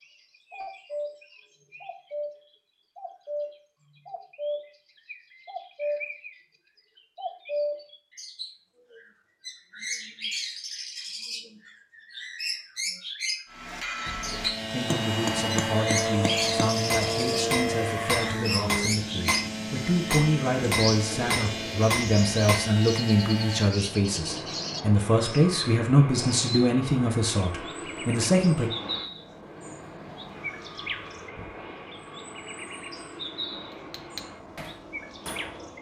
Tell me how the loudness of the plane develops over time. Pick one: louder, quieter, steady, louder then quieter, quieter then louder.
quieter.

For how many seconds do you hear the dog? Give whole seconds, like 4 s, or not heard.
not heard.